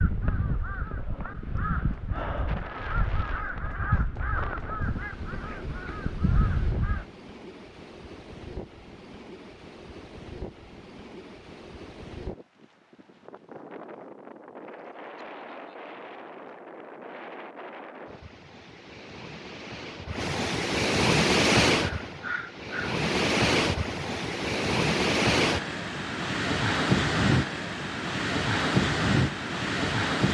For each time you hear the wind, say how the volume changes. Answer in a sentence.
You can hear the wind from 0.0 to 30.2 s, getting louder.